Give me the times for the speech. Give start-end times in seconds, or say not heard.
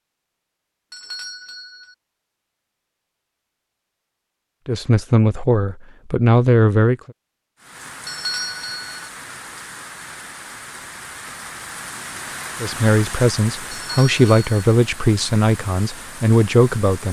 4.7-7.1, 12.6-17.0.